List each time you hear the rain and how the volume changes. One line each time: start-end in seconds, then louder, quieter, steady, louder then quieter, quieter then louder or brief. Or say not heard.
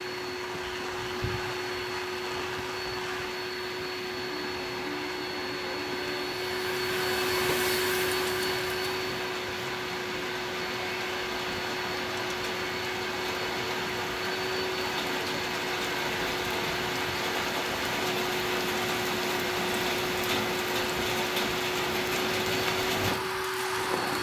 0.0-24.1 louder.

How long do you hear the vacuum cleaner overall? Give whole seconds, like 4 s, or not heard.
24 s.